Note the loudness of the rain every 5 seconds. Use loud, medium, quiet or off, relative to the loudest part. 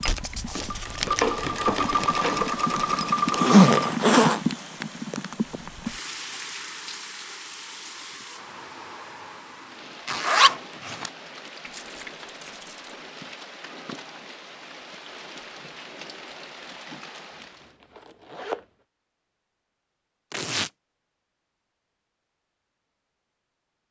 loud, medium, medium, medium, off.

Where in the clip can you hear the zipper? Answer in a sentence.
You can hear the zipper from 3.3 to 4.4 s, from 10.1 to 11.1 s and from 17.8 to 18.6 s.